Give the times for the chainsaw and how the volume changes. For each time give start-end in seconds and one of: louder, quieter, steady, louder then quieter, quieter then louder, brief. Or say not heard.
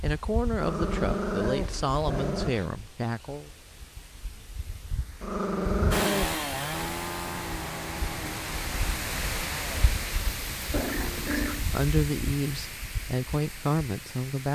5.9-9.9 quieter.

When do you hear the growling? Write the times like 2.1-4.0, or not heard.
0.6-2.7, 5.2-6.3, 10.7-11.7.